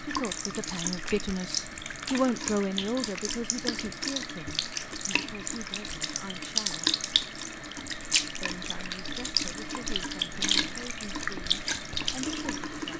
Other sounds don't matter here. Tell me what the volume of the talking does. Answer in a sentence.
The loudness of the talking goes down.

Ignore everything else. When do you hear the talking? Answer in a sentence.
You can hear the talking from 0.0 to 7.0 s and from 8.4 to 12.9 s.